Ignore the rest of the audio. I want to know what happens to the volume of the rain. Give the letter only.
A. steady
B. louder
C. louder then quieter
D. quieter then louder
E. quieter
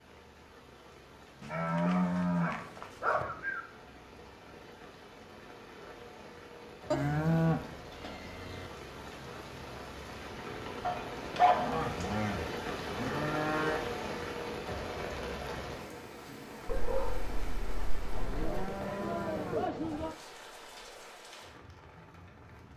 C.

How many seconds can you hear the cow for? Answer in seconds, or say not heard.
8 s.